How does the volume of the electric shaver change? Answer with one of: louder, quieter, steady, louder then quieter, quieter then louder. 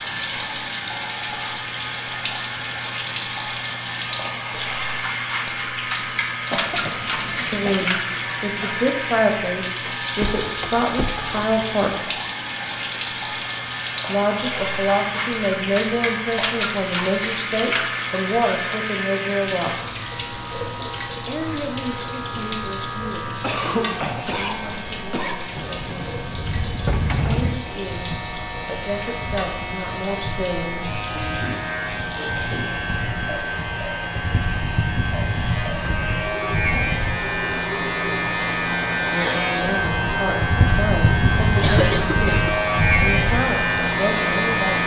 louder.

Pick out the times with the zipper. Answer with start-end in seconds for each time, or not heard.
not heard.